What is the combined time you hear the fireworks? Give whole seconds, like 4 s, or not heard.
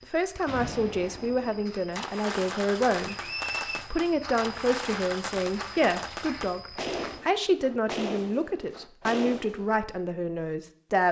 9 s.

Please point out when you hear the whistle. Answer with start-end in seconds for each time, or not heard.
3.0-3.9.